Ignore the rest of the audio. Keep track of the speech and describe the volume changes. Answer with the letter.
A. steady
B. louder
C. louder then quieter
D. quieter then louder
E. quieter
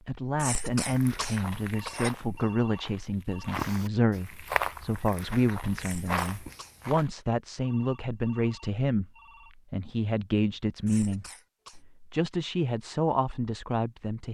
A.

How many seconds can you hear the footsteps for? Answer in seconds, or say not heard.
6 s.